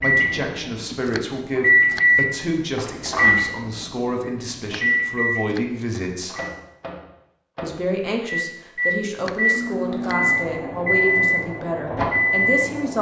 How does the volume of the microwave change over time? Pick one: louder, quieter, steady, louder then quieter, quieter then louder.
quieter then louder.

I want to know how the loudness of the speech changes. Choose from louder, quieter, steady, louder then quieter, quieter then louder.
steady.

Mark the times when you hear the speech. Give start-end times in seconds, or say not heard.
0.0-6.3, 7.6-12.9.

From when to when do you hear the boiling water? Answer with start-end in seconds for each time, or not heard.
not heard.